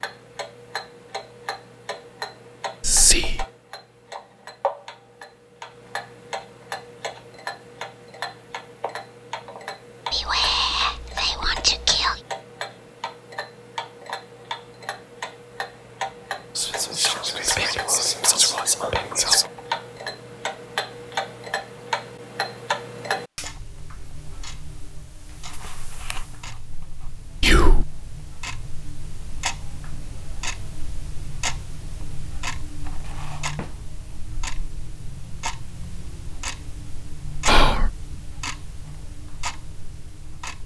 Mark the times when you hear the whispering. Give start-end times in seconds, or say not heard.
2.8-3.5, 10.1-12.2, 16.6-19.4, 27.4-27.9, 37.5-37.9.